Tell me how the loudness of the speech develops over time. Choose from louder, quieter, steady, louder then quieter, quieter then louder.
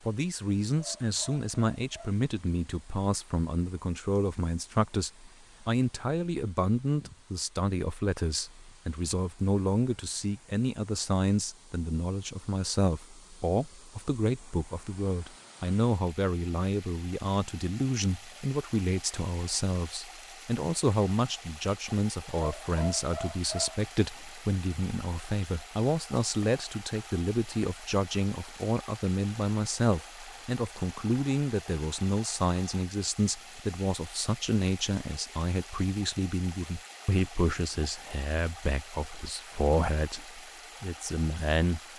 steady.